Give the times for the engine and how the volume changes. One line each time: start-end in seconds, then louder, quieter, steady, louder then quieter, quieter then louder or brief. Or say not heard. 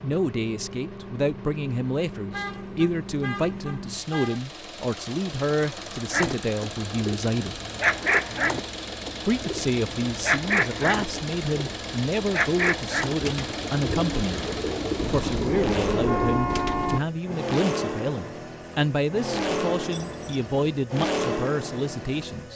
0.0-22.5 louder.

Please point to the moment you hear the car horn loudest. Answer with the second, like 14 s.
16 s.